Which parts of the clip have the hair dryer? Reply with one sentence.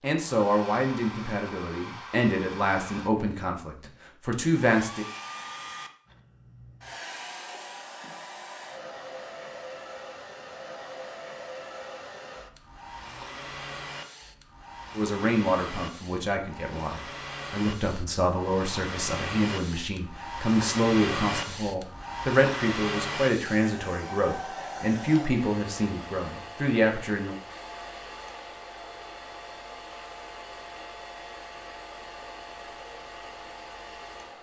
You can hear the hair dryer from 0.0 to 34.3 s.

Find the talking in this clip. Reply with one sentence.
You can hear the talking from 0.0 to 5.0 s and from 14.9 to 27.4 s.